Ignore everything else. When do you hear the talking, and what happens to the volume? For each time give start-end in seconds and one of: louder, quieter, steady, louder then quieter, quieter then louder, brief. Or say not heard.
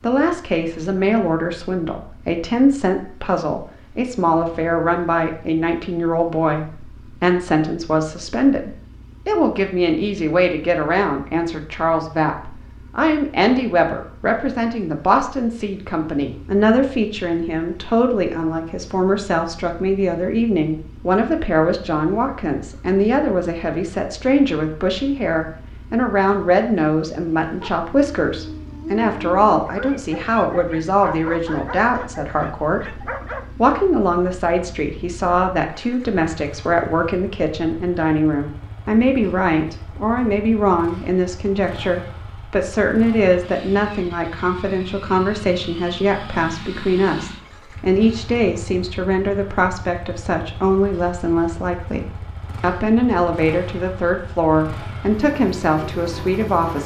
0.0-56.8 steady.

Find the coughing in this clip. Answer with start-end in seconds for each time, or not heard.
not heard.